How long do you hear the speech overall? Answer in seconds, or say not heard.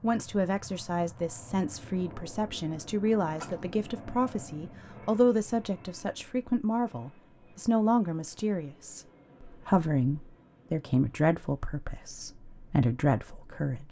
14 s.